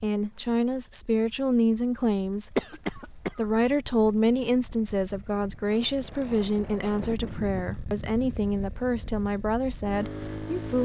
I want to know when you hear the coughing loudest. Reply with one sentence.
The loudest moment of the coughing is at 3 seconds.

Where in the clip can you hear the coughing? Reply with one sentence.
You can hear the coughing from 2.5 to 3.5 s and from 6.8 to 7.5 s.